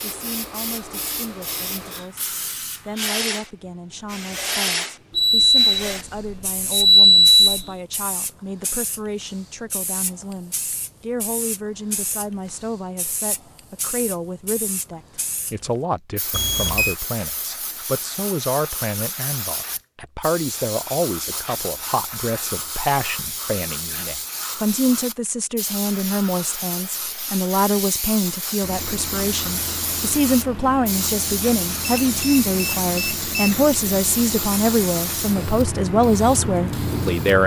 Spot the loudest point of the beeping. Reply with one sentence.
The volume of the beeping peaks at 7 seconds.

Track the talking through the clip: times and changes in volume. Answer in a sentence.
The talking can be heard from 0.0 to 37.4 s, getting louder.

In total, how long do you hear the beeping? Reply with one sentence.
The beeping can be heard for 5 seconds in total.